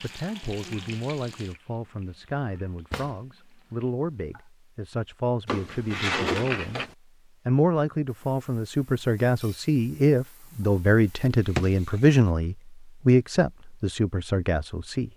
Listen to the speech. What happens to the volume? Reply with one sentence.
The loudness of the speech goes up.